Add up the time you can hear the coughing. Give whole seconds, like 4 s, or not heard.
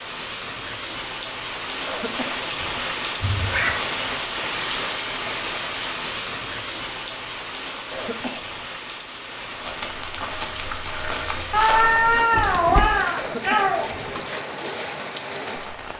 3 s.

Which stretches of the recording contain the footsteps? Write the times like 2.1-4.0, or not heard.
9.6-13.1.